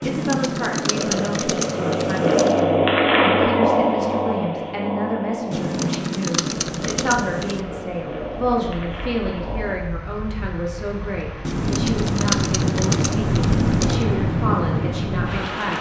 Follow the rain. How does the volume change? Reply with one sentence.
The volume of the rain goes up.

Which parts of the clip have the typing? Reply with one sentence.
The typing can be heard from 0.0 to 2.6 s, from 5.5 to 7.7 s and from 11.4 to 14.1 s.